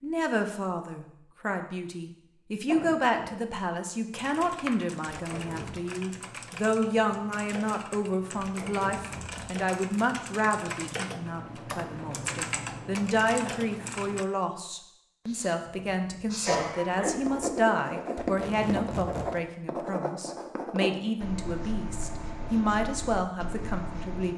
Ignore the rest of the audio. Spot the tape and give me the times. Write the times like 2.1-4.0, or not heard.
5.2-5.8, 8.4-9.5, 18.1-19.3.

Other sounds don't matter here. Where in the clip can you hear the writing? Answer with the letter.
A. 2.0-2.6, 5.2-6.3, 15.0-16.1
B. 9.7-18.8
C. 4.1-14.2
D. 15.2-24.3
D.